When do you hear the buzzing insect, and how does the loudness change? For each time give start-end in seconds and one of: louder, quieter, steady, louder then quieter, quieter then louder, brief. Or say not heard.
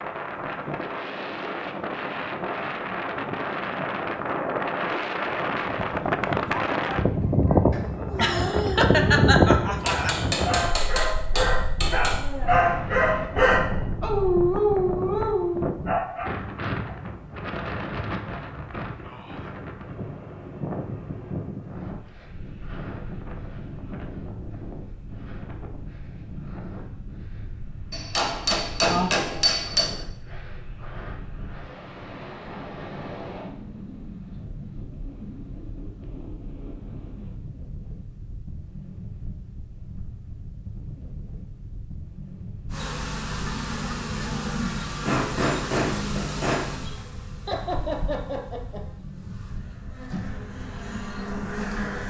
42.7-52.0 quieter then louder.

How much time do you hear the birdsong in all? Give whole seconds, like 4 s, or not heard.
not heard.